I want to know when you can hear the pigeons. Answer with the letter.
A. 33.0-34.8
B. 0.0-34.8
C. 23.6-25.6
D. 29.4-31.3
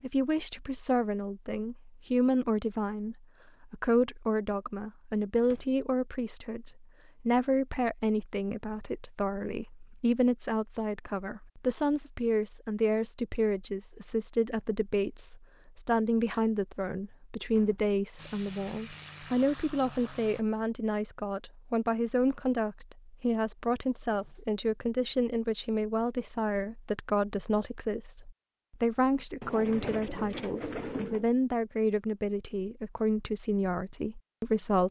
D.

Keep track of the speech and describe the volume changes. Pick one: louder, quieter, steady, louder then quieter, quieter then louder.
steady.